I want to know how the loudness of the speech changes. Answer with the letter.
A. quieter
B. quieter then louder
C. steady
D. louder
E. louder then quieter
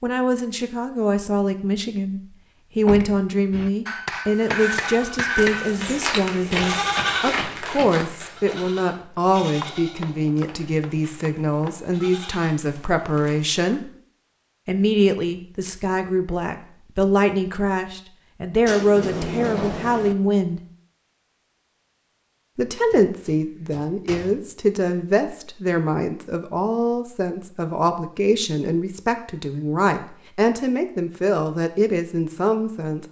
C.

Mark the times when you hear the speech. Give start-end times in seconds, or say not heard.
0.0-13.9, 14.7-20.6, 22.6-33.0.